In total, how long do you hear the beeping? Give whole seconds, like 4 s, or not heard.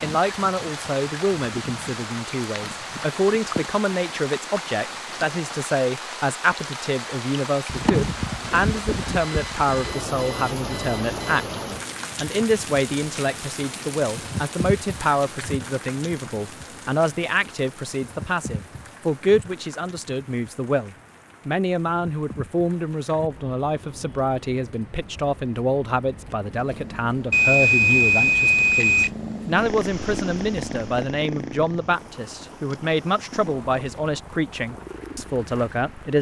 4 s.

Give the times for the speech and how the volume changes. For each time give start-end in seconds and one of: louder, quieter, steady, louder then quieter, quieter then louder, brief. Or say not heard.
0.0-11.4 steady
12.2-36.1 steady.